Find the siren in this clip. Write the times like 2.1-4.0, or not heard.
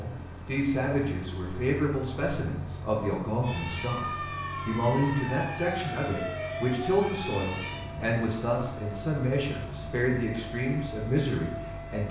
3.4-12.0.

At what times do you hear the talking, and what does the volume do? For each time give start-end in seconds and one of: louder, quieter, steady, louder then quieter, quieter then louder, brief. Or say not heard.
0.0-12.0 steady.